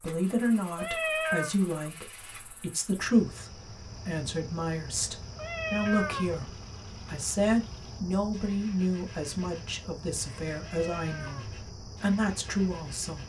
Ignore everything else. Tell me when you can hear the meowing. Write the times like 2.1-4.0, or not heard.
0.8-1.6, 5.3-6.4, 10.6-11.5.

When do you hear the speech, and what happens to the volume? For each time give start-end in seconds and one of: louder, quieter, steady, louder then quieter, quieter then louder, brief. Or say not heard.
0.0-13.2 steady.